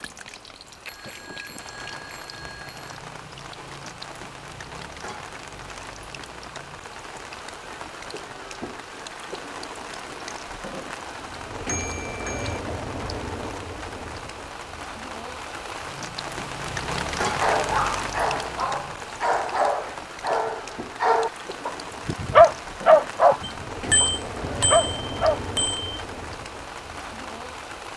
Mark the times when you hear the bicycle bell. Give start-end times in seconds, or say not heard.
0.8-3.0, 11.7-12.6, 23.4-25.8.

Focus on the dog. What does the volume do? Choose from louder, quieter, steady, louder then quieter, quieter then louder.
louder then quieter.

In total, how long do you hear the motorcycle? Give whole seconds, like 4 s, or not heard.
not heard.